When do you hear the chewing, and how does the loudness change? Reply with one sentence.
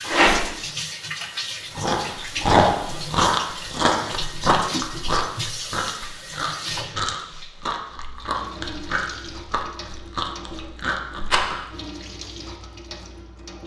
You can hear the chewing from 1.8 to 11.7 s, getting quieter.